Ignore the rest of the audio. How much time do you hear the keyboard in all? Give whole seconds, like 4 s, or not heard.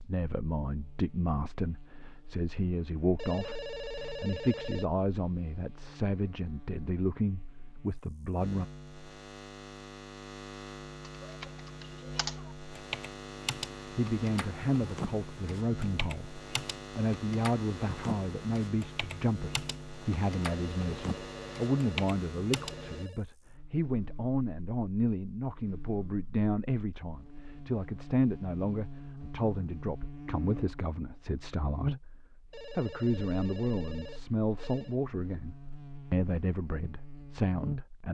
12 s.